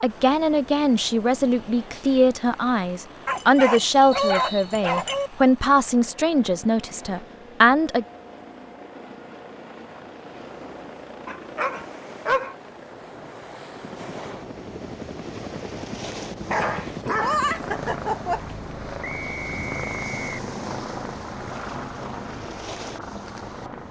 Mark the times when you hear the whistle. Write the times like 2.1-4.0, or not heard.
4.1-5.0, 19.0-20.3.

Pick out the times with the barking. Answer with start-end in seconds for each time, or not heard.
3.2-5.3, 11.2-12.6, 16.5-18.4.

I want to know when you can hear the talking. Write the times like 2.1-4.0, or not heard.
0.0-8.1.